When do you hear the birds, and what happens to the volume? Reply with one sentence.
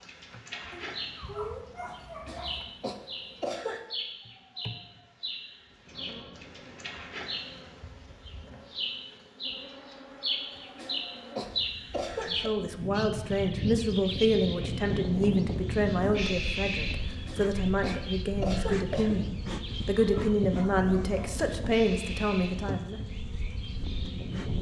The birds can be heard from 0.0 to 24.5 s, getting louder then quieter.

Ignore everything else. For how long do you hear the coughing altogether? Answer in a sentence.
The coughing can be heard for 6 seconds in total.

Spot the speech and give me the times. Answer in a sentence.
The speech can be heard from 12.2 to 23.0 s.